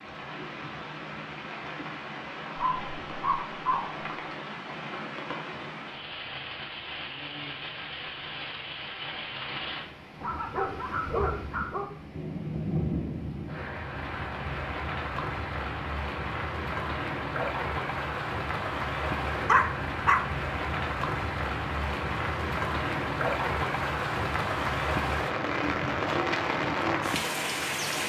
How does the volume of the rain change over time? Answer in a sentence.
The volume of the rain goes up.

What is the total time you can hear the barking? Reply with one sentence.
The barking can be heard for 4 seconds in total.